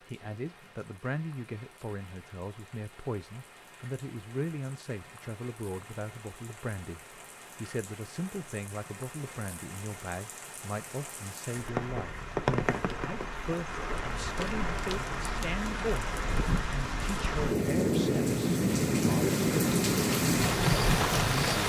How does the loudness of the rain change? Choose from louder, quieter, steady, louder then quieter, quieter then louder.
louder.